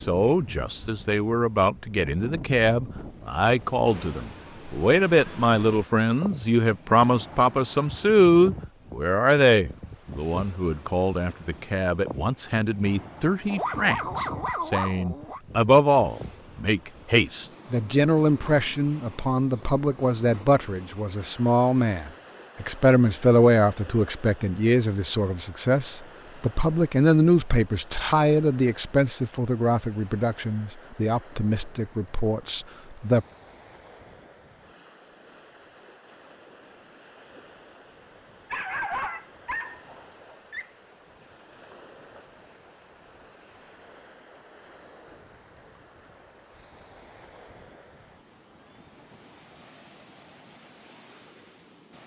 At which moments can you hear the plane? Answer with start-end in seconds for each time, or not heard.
not heard.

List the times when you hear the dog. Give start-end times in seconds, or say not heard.
13.4-15.4, 38.5-40.7.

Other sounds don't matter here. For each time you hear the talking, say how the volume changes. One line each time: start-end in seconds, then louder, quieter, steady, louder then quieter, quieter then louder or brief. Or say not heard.
0.0-33.2 steady.